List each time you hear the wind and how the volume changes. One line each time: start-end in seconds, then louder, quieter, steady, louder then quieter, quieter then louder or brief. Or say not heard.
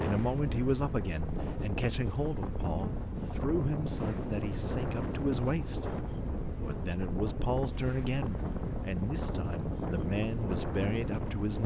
0.0-11.6 steady.